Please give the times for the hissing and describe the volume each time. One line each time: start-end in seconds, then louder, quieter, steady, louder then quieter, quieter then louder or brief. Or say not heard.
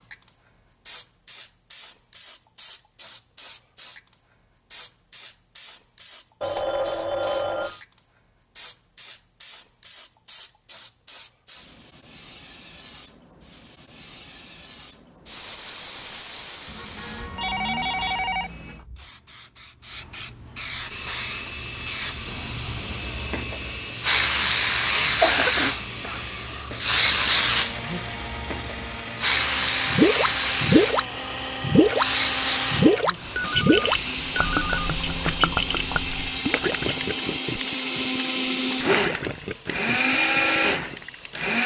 0.0-41.5 louder then quieter.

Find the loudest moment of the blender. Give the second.
40 s.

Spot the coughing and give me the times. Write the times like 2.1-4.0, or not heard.
25.2-26.6.